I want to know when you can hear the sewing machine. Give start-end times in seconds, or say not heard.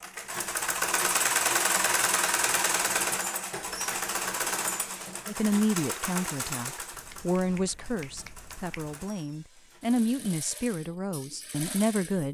0.0-12.2.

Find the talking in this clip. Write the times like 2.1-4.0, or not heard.
5.2-12.2.